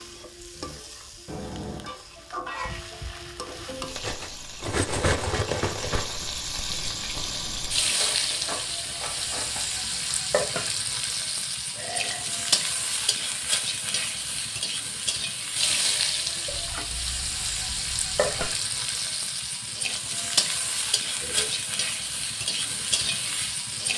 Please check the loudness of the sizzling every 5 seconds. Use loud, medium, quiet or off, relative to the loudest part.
medium, loud, loud, loud, loud.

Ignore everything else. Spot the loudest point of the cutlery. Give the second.
5 s.